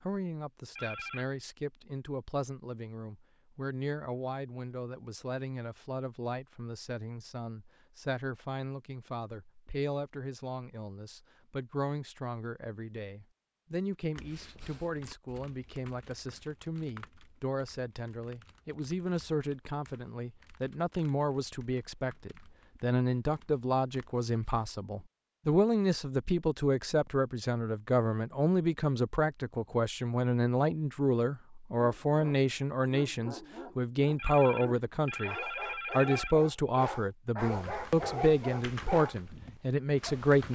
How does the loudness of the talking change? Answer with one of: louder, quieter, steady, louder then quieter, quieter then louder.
louder.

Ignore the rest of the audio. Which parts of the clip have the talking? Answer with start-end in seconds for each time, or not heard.
0.0-40.5.